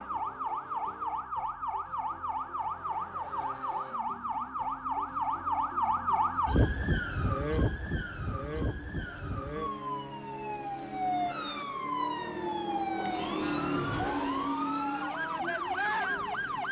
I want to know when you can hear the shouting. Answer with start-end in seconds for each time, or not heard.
not heard.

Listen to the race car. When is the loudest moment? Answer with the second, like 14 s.
14 s.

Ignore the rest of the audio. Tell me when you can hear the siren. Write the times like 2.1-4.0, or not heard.
0.0-16.6.